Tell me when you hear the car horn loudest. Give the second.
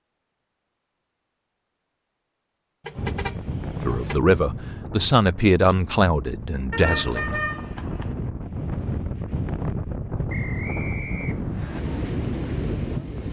7 s.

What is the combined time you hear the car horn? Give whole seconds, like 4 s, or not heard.
3 s.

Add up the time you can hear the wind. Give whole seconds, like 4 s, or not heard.
10 s.